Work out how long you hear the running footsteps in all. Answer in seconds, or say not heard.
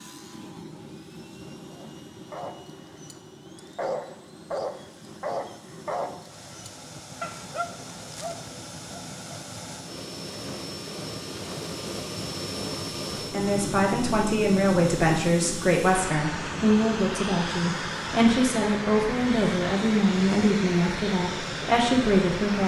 not heard.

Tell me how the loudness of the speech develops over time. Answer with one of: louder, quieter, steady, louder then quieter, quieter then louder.
steady.